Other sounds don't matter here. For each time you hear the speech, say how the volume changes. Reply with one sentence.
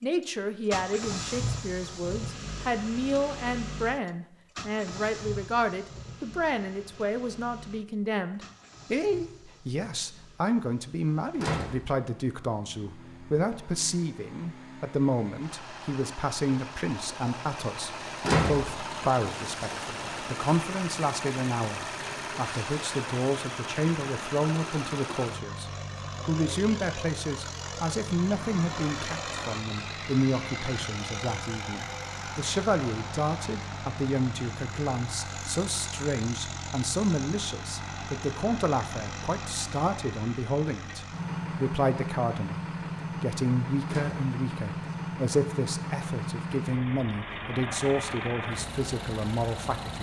You can hear the speech from 0.0 to 49.9 s, at a steady volume.